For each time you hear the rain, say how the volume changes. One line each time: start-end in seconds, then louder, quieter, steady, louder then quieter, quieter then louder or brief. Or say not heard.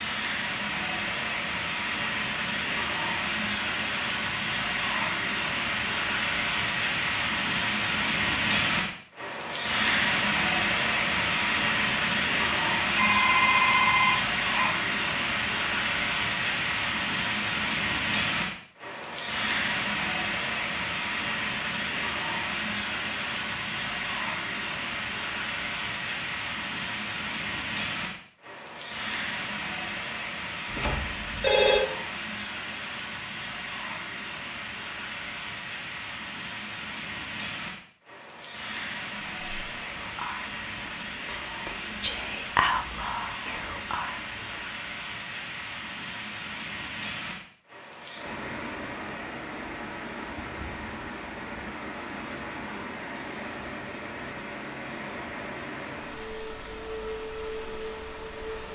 0.0-58.7 quieter.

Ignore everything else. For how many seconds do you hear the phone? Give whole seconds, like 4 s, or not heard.
3 s.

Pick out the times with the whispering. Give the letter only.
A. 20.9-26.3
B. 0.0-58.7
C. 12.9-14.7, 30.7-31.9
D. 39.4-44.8
D.